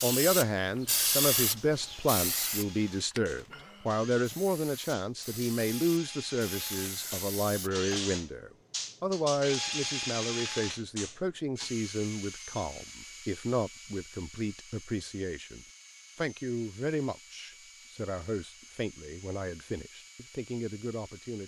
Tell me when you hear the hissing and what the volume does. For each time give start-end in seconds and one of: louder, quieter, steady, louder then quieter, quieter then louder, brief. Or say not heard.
0.0-8.0 quieter then louder.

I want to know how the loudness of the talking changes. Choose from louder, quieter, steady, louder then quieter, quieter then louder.
quieter.